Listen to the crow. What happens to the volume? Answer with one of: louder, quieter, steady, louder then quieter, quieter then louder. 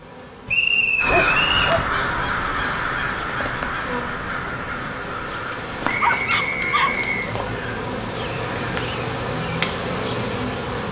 quieter.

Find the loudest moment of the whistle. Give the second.
1 s.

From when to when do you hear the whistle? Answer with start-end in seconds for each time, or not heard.
0.5-1.8, 5.8-7.2.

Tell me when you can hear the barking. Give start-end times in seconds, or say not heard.
1.1-1.9, 6.0-7.4.